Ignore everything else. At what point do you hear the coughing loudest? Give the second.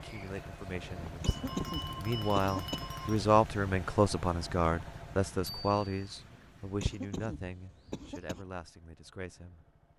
2 s.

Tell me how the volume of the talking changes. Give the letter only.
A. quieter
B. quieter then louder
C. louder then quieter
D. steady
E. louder
C.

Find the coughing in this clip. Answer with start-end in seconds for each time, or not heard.
1.1-2.9, 6.7-8.4.